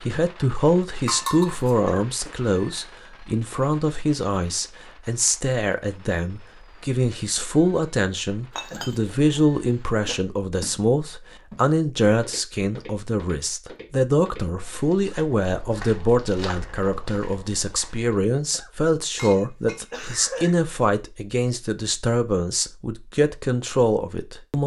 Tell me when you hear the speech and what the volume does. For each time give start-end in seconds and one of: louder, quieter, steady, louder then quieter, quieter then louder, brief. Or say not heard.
0.0-24.6 steady.